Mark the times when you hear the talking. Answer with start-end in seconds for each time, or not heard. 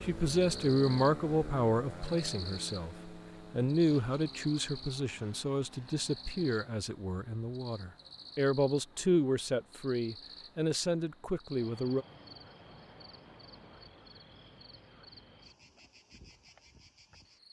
0.0-12.1.